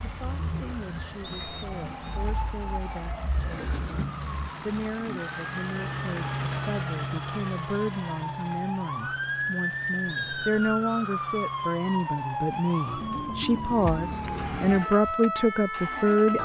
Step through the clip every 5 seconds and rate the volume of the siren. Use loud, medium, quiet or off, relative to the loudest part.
medium, loud, loud, loud.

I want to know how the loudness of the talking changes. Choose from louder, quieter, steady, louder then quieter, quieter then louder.
louder.